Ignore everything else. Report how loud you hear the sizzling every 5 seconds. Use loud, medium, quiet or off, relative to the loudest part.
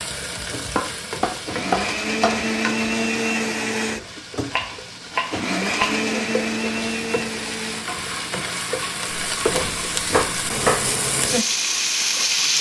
medium, medium, loud.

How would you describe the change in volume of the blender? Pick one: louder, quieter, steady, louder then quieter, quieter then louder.
quieter.